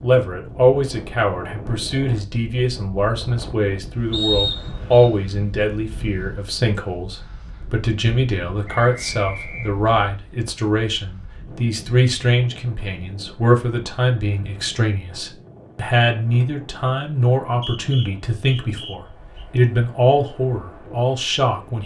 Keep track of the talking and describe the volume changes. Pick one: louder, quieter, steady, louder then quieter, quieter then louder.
steady.